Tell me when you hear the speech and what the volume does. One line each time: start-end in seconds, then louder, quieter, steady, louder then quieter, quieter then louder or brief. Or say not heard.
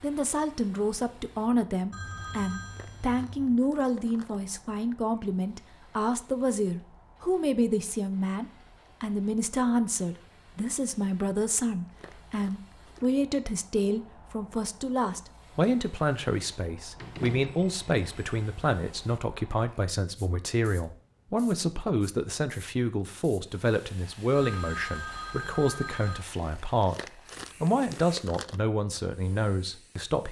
0.0-30.2 steady.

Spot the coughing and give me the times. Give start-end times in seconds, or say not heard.
not heard.